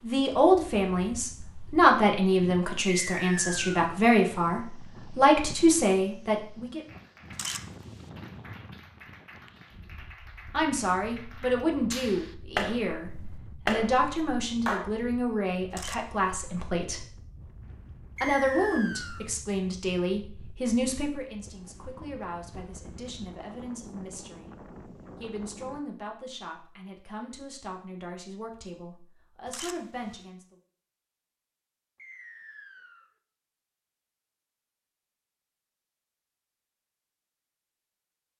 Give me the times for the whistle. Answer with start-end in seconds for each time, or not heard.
2.9-3.8, 18.1-19.3, 31.9-33.1.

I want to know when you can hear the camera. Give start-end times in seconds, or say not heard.
7.3-8.1, 15.7-16.3, 29.4-30.2.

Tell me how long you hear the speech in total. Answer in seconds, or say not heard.
25 s.